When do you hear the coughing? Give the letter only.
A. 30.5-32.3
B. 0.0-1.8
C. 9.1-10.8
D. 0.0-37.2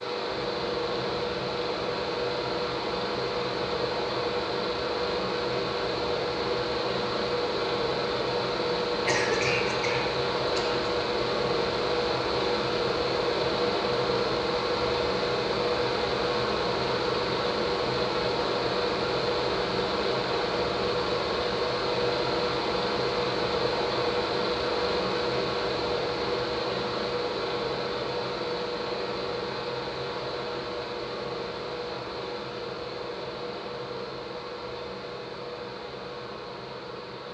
C.